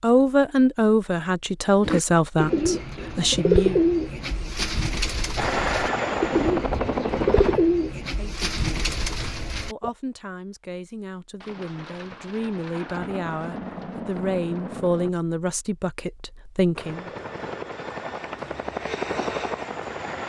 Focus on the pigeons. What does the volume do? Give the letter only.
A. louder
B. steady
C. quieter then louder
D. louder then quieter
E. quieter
E.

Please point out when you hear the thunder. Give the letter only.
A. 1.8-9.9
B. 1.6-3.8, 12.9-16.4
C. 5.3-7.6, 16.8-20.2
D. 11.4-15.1
D.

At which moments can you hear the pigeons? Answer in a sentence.
The pigeons can be heard from 1.8 to 9.9 s.